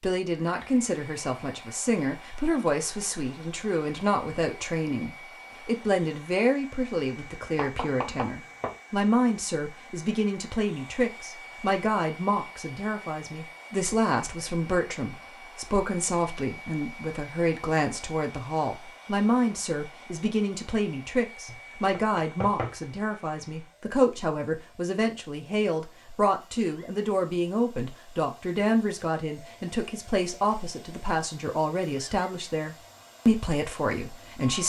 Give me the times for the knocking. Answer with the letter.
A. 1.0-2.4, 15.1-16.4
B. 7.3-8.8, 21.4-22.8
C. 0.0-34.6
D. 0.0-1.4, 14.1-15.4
B.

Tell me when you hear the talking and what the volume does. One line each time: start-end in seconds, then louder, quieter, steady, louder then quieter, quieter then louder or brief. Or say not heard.
0.0-34.6 steady.